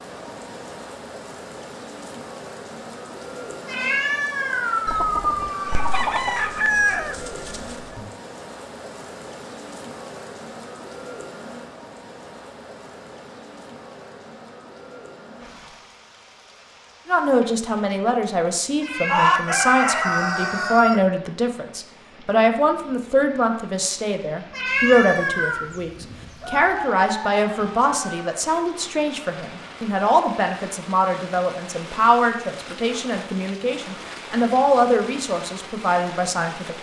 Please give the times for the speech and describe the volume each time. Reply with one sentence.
You can hear the speech from 17.1 to 36.7 s, at a steady volume.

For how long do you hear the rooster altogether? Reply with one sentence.
The rooster can be heard for 8 seconds in total.